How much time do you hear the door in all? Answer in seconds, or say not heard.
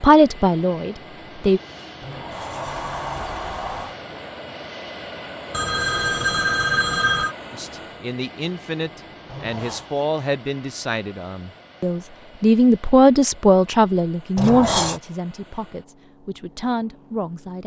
3 s.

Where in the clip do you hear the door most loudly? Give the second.
15 s.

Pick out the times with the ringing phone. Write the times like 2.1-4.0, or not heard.
5.5-7.3.